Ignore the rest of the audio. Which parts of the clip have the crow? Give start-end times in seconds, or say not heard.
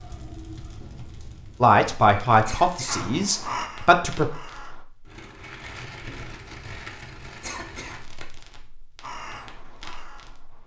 2.9-4.8, 9.0-10.6.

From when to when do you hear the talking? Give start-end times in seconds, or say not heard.
1.6-4.2.